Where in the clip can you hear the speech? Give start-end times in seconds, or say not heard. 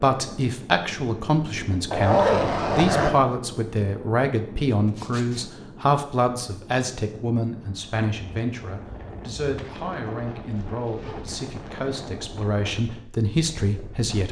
0.0-14.2.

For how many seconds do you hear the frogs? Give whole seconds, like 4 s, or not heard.
not heard.